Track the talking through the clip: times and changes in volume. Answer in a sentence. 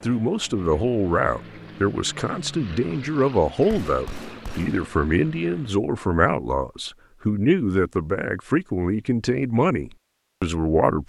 The talking can be heard from 0.0 to 11.0 s, at a steady volume.